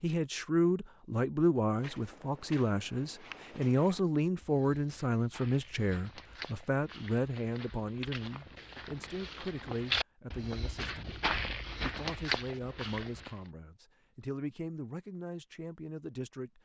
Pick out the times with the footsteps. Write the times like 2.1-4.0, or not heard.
1.6-13.5.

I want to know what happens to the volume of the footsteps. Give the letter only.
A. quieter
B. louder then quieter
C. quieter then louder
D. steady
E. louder
E.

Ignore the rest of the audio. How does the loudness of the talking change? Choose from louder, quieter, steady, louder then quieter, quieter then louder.
quieter.